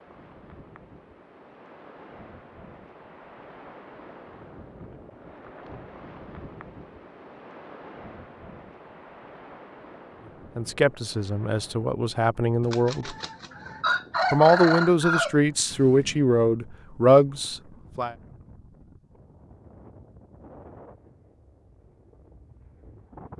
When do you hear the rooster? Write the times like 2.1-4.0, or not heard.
12.6-16.1.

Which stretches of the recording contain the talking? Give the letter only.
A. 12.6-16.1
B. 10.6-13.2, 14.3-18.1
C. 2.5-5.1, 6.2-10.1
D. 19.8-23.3
B.